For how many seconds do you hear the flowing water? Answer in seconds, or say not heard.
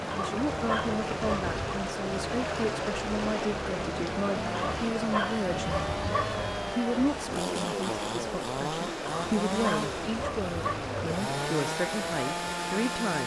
13 s.